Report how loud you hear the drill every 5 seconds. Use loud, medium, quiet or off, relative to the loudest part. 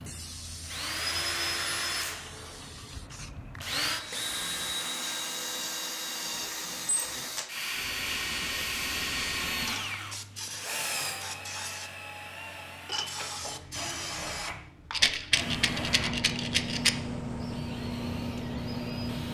loud, loud, medium, medium.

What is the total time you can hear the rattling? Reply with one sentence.
The rattling can be heard for 2 seconds in total.